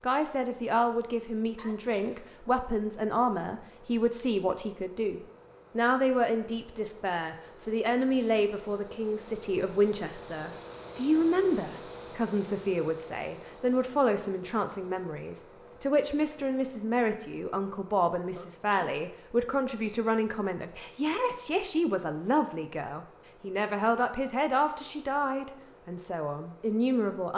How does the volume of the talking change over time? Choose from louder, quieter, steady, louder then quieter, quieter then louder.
steady.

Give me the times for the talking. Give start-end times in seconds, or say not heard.
0.0-27.3.